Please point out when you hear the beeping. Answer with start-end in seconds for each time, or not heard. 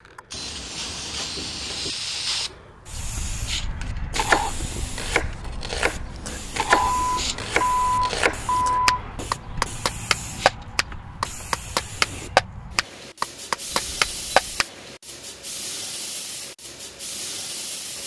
0.3-1.9, 6.7-9.2, 13.7-14.7.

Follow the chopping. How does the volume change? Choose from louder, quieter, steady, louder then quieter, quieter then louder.
louder.